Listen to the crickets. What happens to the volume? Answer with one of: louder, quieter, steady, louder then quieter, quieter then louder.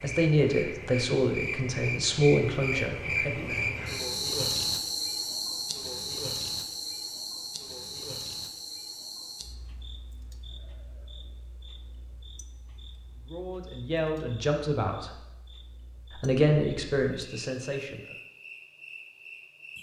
quieter then louder.